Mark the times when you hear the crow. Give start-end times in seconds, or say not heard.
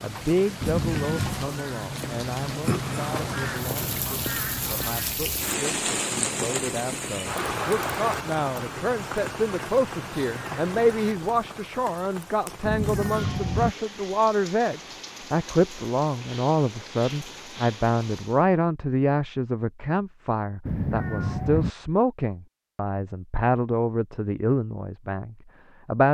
0.0-11.7.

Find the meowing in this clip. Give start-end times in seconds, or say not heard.
0.6-1.5, 12.7-13.8, 20.6-21.7.